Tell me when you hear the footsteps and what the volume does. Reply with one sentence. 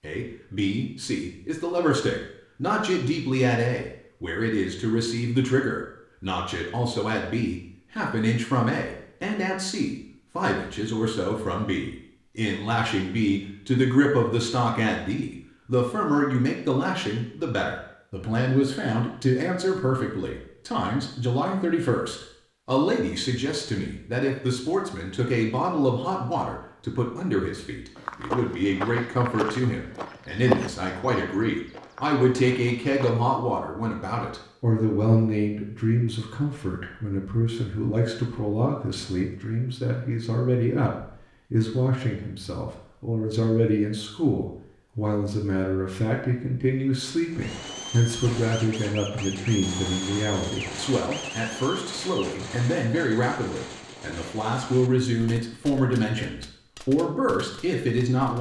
The footsteps can be heard from 27.9 to 33.1 s, getting louder then quieter.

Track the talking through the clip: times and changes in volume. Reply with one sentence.
You can hear the talking from 0.0 to 58.3 s, at a steady volume.